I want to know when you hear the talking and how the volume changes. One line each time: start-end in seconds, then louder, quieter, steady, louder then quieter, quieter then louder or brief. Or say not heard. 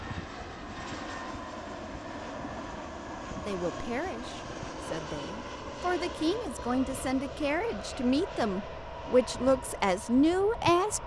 3.4-11.0 louder.